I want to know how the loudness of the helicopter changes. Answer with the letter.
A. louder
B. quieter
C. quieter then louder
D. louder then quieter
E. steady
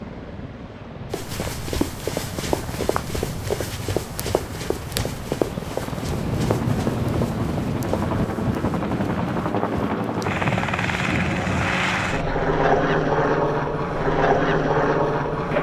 A.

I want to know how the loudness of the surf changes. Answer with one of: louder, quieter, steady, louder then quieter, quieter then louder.
louder.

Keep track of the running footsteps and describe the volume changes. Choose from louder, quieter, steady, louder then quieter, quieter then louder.
quieter.